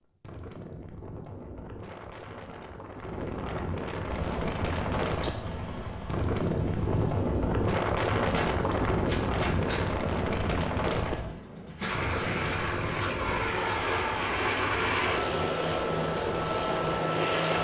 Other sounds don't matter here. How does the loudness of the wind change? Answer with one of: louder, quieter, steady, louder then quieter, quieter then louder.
louder then quieter.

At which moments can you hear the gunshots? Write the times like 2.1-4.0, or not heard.
8.2-9.9.